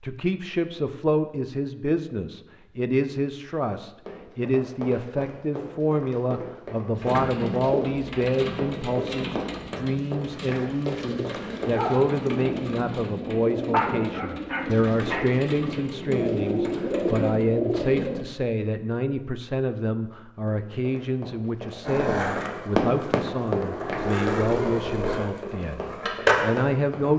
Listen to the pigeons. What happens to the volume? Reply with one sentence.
The volume of the pigeons goes down, then up.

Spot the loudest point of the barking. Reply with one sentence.
The loudest moment of the barking is at 14 seconds.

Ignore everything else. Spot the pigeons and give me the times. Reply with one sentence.
The pigeons can be heard from 7.0 to 18.2 s.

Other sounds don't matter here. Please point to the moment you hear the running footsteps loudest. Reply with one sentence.
The loudest moment of the running footsteps is at 23 seconds.